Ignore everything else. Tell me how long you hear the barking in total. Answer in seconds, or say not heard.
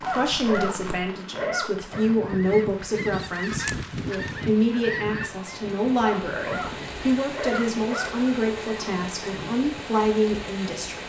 4 s.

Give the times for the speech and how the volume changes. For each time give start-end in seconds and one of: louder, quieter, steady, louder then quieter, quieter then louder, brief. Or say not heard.
0.0-11.0 steady.